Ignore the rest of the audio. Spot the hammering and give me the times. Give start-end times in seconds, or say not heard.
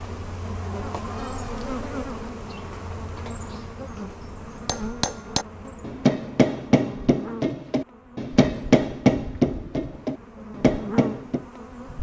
4.7-11.4.